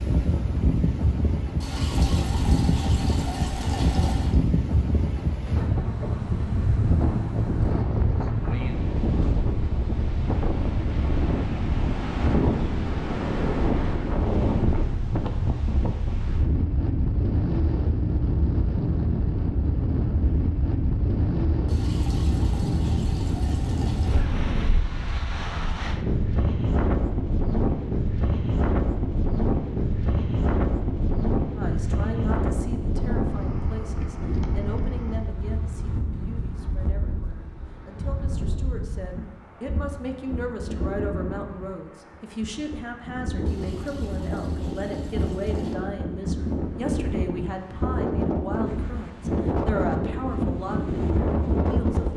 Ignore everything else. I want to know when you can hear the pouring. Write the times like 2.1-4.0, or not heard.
1.6-4.3, 21.6-24.2, 43.5-45.8.